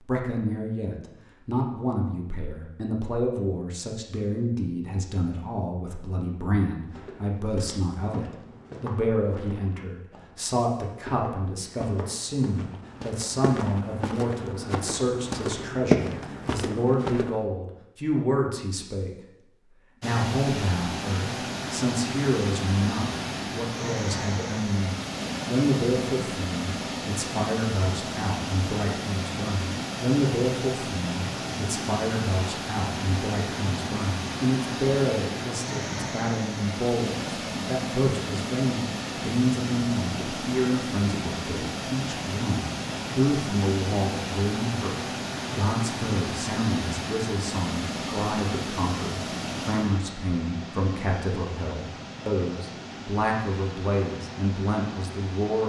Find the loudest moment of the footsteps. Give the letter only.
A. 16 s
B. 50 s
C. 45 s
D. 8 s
A.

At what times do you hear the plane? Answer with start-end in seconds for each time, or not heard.
not heard.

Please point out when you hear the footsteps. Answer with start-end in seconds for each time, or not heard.
6.8-17.4.